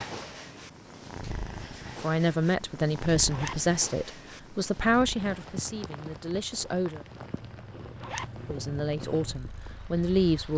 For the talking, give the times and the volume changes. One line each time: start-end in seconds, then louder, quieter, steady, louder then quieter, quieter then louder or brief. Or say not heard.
2.0-7.0 quieter
8.4-10.5 brief.